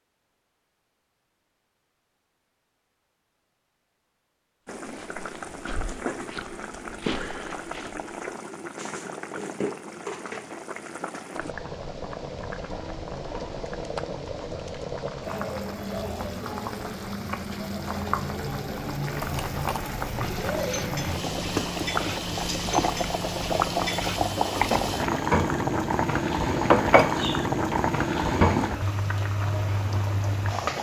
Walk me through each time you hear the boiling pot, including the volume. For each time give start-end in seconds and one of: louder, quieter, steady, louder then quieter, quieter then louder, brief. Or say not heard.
4.7-30.7 louder.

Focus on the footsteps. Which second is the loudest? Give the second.
7 s.